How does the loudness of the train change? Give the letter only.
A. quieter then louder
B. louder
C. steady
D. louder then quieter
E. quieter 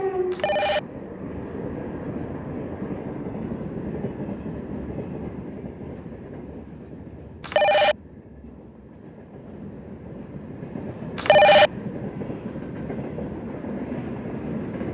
A.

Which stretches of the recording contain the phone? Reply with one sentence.
The phone can be heard from 0.3 to 0.8 s, from 7.4 to 8.0 s and from 11.2 to 11.7 s.